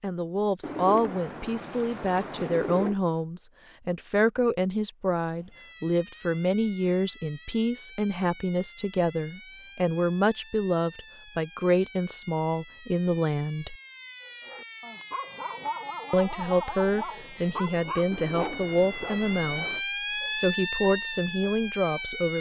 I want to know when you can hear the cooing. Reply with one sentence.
The cooing can be heard from 0.6 to 3.0 s and from 18.1 to 19.8 s.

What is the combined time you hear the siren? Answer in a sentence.
The siren can be heard for 17 seconds in total.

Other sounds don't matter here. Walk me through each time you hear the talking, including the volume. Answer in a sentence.
The talking can be heard from 0.0 to 13.8 s, at a steady volume; and from 16.1 to 22.3 s, at a steady volume.